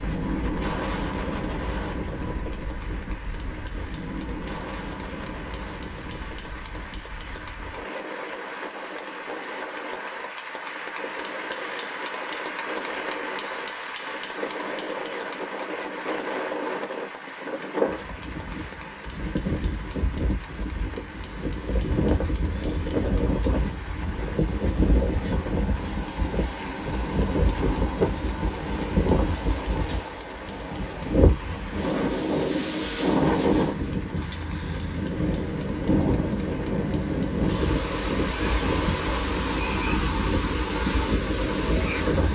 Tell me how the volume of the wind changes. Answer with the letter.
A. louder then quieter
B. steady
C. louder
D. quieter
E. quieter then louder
C.